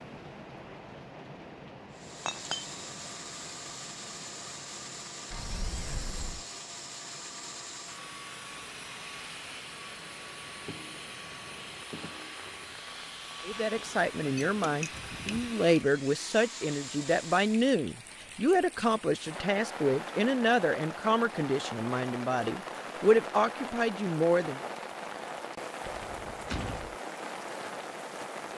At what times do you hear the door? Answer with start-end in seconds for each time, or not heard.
5.3-6.5, 25.9-26.9.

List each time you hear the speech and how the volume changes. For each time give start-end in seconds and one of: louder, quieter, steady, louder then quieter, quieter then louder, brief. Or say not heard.
13.4-24.6 steady.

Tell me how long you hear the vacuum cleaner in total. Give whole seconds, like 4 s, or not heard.
16 s.